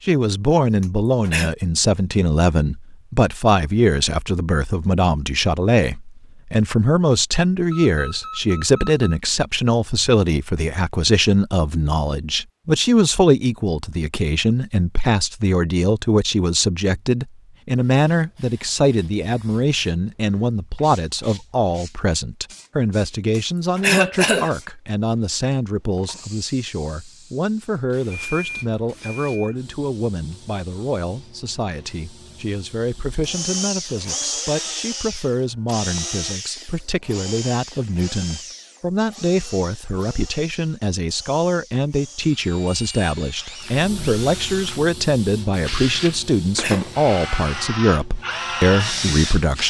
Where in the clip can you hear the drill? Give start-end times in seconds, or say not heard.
33.2-49.6.